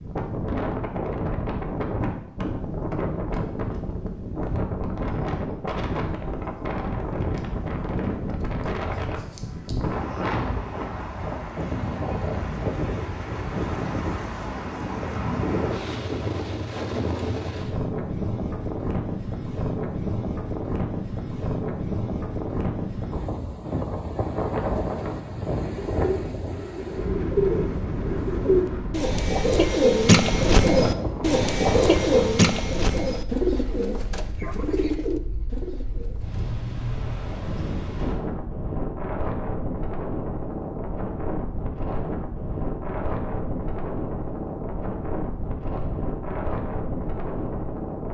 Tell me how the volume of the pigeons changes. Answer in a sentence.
The loudness of the pigeons goes up, then down.